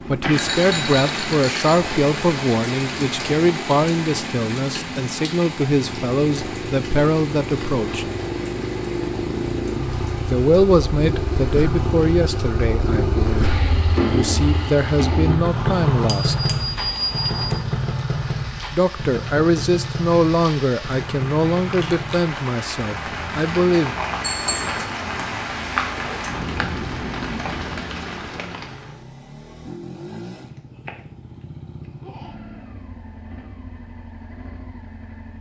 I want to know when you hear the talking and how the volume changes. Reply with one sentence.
The talking can be heard from 0.1 to 8.1 s, at a steady volume; from 10.2 to 16.4 s, getting quieter then louder; and from 18.7 to 23.9 s, getting quieter.